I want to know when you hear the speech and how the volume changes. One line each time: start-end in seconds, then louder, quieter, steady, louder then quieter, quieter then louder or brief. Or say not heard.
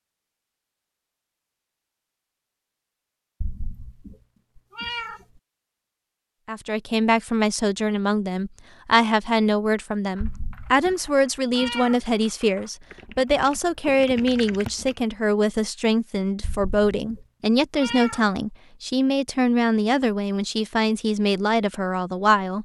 6.5-22.6 steady.